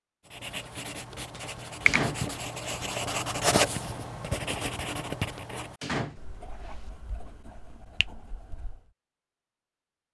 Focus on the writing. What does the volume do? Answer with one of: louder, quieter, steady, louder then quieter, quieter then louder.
louder then quieter.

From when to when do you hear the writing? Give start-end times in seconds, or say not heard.
0.2-8.9.